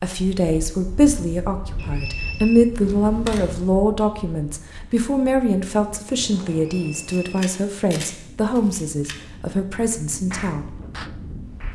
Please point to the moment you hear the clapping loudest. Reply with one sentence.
The loudest moment of the clapping is at 10 seconds.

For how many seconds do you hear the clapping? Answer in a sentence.
The clapping can be heard for 2 seconds in total.